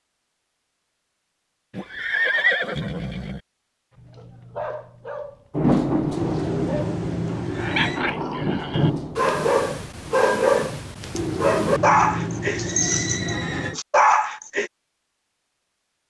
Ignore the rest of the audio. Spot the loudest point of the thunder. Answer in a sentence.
The volume of the thunder peaks at 6 seconds.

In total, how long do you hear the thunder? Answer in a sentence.
You can hear the thunder for 4 seconds altogether.